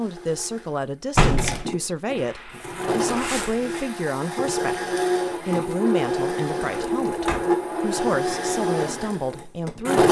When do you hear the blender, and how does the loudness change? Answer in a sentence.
The blender can be heard from 0.0 to 10.0 s, getting louder.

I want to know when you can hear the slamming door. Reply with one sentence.
The slamming door can be heard from 1.1 to 1.6 s and from 6.8 to 7.5 s.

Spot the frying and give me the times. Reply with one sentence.
You can hear the frying from 2.1 to 4.0 s.